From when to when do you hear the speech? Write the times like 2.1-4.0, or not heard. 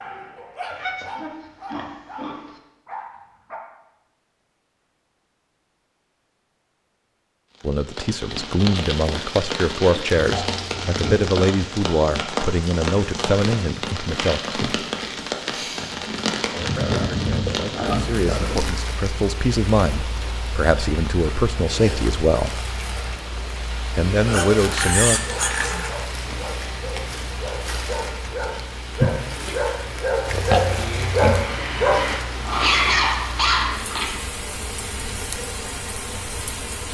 7.6-14.8, 16.6-22.6, 23.9-25.2.